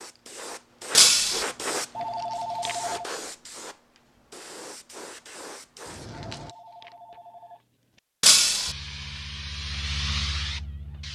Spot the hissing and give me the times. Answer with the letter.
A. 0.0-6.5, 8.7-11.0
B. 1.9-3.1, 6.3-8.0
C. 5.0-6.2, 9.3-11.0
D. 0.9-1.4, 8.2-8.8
A.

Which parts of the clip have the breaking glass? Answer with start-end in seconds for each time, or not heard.
0.9-1.4, 8.2-8.8.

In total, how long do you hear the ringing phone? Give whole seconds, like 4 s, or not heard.
3 s.